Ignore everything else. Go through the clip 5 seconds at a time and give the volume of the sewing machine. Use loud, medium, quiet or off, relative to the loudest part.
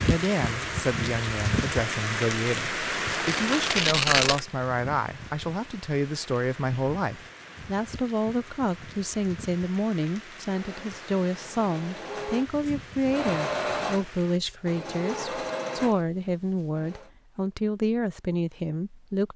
off, off, loud, loud.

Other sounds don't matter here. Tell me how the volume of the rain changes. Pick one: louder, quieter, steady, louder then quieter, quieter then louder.
quieter.